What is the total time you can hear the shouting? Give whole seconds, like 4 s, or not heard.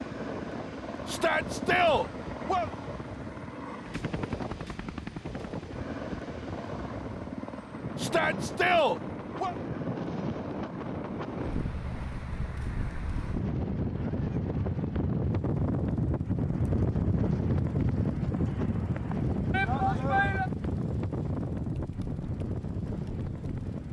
4 s.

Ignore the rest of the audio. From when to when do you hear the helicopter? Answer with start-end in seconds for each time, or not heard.
0.0-23.8.